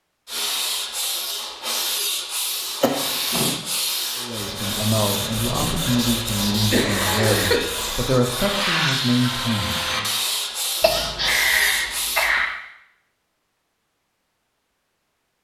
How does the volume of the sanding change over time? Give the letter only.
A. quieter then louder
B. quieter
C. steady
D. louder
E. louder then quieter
C.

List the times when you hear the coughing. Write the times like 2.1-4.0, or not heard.
2.8-3.5, 6.2-7.7, 10.8-12.6.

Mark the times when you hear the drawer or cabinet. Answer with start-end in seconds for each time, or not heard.
5.3-5.8.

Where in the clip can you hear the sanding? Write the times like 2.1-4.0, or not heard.
0.2-12.3.